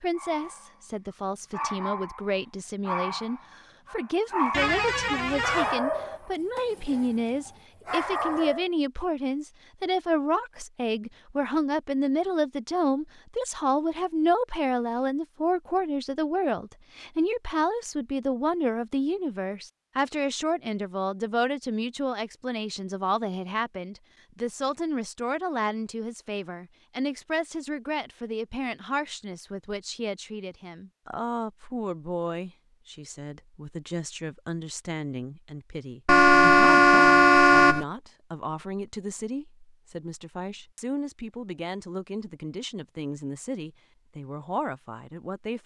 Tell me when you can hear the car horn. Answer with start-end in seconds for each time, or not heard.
4.5-5.8, 36.0-37.9.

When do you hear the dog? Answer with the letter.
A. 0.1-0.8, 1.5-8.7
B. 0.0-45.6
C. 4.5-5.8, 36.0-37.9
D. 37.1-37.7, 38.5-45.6
A.